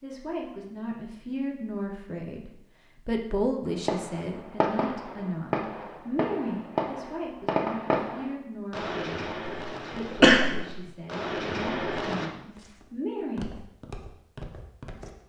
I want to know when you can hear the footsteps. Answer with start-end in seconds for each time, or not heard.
12.4-15.2.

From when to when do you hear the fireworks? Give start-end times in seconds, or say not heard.
3.6-12.3.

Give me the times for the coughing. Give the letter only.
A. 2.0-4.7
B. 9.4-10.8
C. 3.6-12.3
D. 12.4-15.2
B.